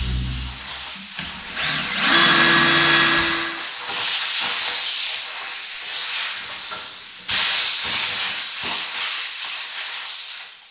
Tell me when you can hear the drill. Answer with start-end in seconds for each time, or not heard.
0.0-3.6.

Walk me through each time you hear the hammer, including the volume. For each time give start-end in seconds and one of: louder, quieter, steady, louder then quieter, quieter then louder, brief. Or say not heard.
not heard.